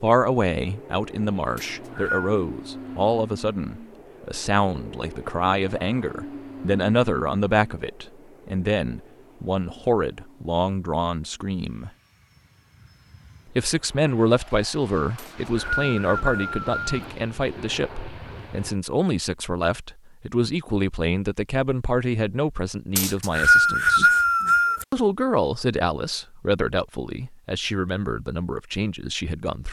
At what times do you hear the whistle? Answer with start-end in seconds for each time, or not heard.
1.6-2.4, 15.2-17.1, 22.9-24.9.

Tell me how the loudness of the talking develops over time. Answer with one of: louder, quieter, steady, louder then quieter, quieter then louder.
steady.